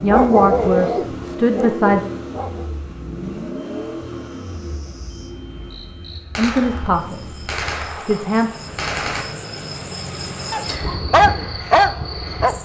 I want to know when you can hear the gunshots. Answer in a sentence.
You can hear the gunshots from 6.3 to 9.2 s.